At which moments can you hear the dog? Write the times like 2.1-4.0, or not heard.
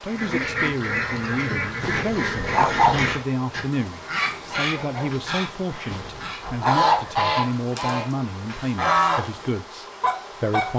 1.8-3.0, 5.9-7.2.